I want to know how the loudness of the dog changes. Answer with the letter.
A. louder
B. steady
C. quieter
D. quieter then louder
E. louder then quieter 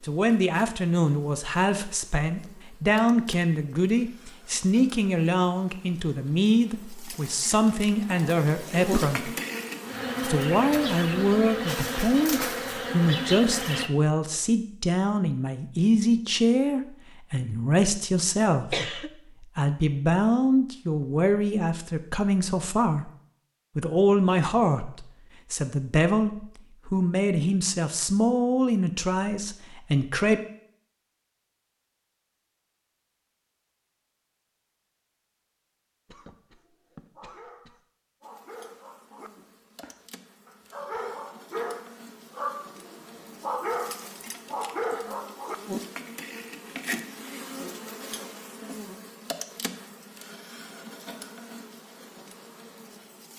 A.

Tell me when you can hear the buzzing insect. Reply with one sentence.
You can hear the buzzing insect from 0.0 to 13.9 s and from 38.2 to 53.3 s.